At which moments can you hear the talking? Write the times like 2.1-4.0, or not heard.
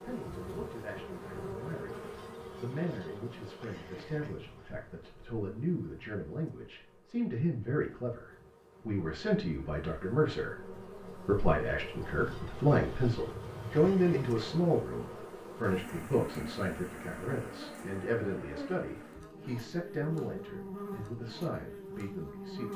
0.0-22.7.